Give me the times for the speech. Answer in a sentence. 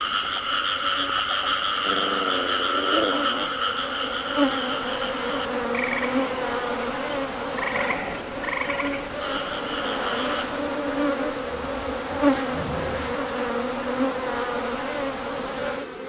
The speech can't be heard in this clip.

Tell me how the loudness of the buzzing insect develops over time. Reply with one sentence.
The loudness of the buzzing insect goes up.